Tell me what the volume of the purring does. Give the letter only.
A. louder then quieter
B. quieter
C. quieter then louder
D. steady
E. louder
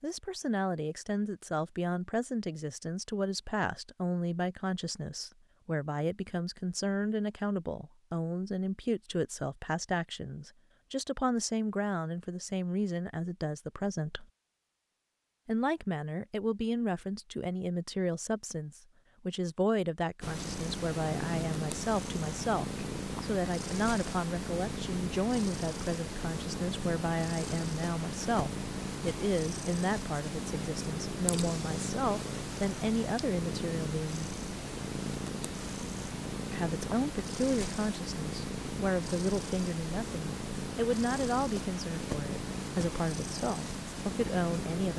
D.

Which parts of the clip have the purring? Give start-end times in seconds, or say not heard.
20.2-44.9.